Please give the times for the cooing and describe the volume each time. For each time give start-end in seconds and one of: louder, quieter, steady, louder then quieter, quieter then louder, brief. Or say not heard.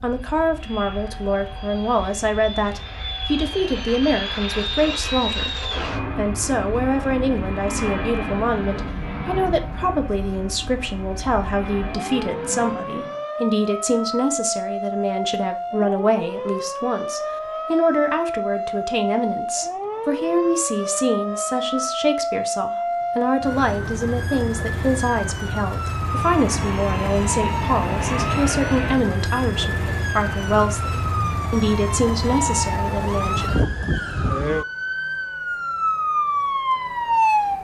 not heard.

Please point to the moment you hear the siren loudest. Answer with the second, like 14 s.
37 s.